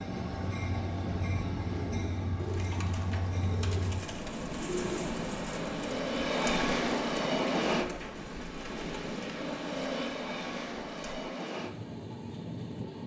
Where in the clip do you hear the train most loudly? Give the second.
7 s.